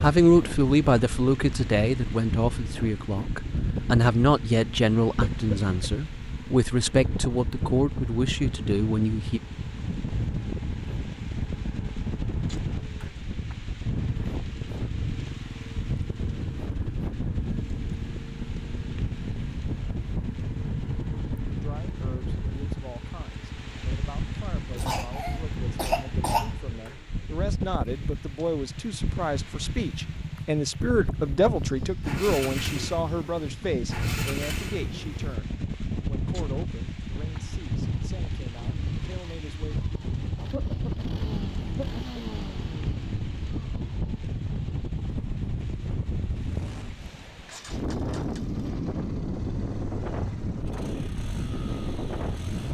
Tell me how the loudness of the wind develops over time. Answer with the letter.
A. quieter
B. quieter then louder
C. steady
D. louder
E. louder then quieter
C.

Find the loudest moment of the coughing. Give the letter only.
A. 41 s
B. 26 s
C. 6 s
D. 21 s
B.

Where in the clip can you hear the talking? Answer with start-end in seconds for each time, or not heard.
0.0-9.4, 21.4-39.8.